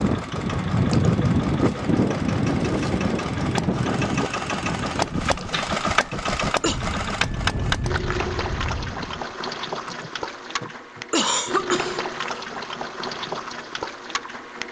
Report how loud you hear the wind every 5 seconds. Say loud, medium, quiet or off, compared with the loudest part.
loud, medium, off.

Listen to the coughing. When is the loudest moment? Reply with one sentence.
The loudest moment of the coughing is at 11 seconds.